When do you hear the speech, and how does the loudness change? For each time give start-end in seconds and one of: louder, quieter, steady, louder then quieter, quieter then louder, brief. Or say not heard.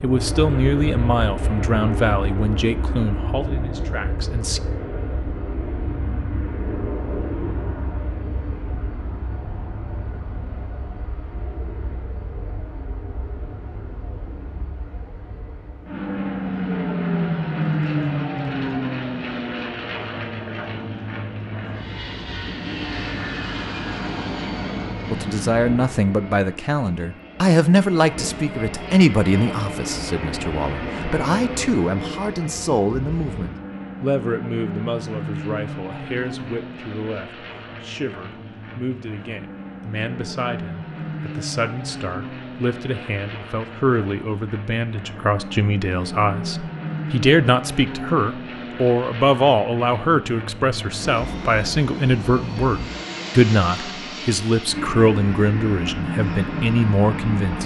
0.0-4.6 quieter
25.1-57.6 quieter then louder.